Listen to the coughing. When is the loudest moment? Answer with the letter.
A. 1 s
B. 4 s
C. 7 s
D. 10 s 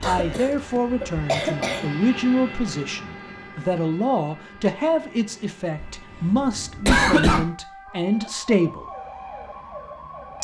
C.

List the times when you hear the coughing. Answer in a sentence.
The coughing can be heard from 0.0 to 1.9 s and from 5.8 to 7.5 s.